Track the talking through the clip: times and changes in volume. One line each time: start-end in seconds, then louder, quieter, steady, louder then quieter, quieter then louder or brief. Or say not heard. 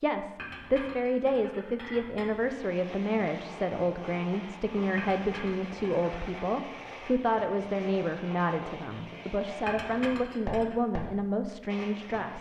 0.0-12.3 steady.